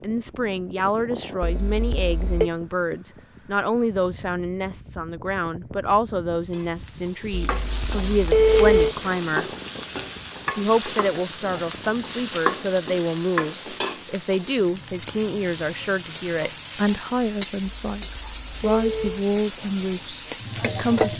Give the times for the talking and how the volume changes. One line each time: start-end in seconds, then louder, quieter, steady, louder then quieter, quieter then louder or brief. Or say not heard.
0.0-9.5 steady
10.6-21.1 steady.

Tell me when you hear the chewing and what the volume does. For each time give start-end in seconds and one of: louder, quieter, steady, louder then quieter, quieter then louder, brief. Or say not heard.
not heard.